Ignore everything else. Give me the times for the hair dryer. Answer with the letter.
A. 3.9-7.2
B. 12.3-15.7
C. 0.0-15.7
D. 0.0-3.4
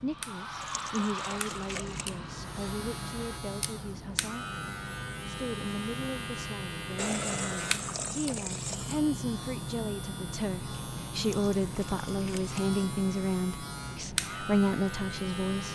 D.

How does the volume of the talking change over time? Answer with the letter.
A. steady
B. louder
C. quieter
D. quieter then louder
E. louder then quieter
B.